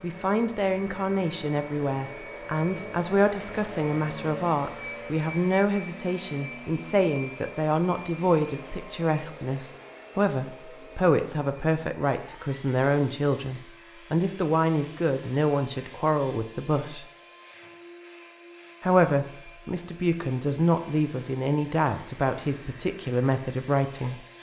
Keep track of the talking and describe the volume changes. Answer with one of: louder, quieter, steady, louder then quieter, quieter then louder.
steady.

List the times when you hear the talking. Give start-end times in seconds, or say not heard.
0.0-17.1, 18.8-24.1.